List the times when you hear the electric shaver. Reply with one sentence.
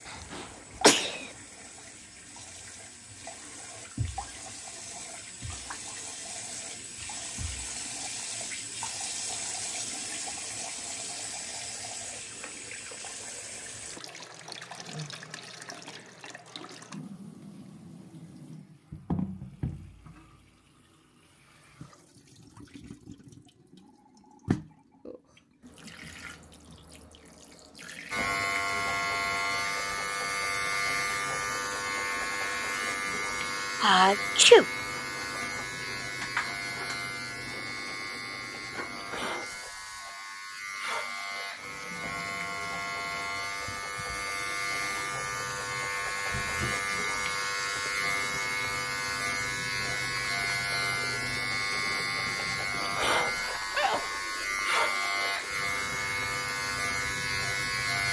The electric shaver can be heard from 28.1 to 58.0 s.